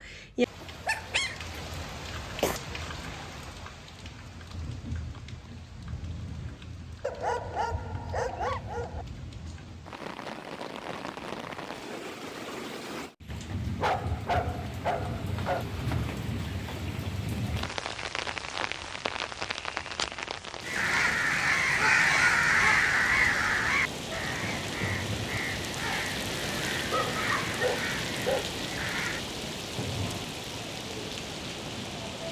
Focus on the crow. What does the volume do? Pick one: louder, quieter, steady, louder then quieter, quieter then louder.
quieter.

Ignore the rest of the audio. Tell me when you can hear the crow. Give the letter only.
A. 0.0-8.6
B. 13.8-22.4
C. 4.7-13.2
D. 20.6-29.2
D.